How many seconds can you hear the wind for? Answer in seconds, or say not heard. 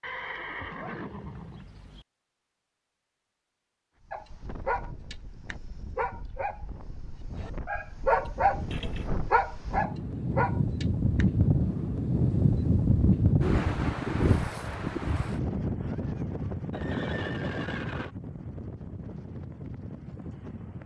17 s.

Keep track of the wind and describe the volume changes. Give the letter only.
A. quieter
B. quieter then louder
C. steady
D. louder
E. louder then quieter
E.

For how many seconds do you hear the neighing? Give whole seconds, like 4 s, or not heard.
4 s.